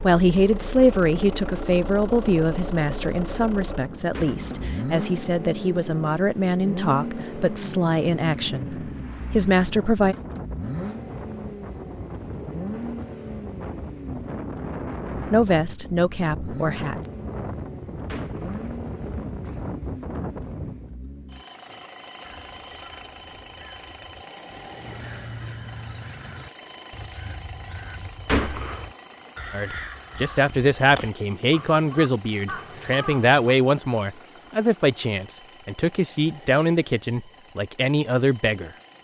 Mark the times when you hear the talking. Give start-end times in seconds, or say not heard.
0.0-10.2, 15.3-16.9, 29.5-38.7.